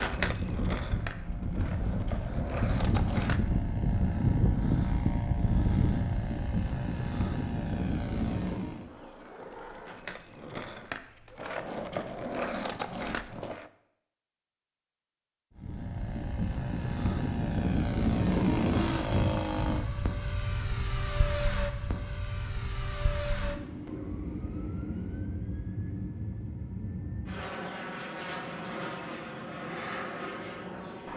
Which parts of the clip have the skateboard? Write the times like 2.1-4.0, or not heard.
0.0-3.6, 8.8-13.7.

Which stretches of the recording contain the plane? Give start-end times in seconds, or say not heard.
0.0-8.9, 15.6-31.1.